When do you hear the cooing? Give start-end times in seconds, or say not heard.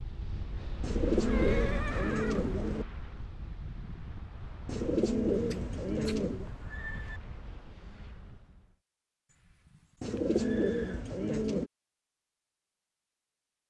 0.8-2.9, 4.7-6.5, 10.0-11.7.